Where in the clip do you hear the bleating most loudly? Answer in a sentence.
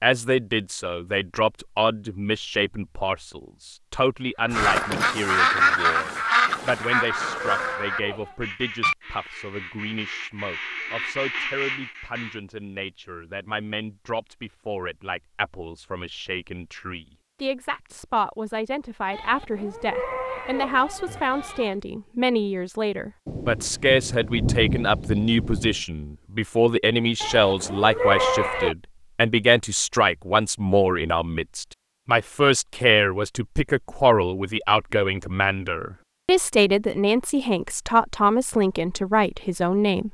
The loudest moment of the bleating is at 28 seconds.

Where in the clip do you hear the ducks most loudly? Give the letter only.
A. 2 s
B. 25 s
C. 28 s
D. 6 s
D.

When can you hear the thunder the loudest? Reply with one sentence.
The volume of the thunder peaks at 25 seconds.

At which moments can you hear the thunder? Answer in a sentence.
You can hear the thunder from 23.2 to 25.8 s.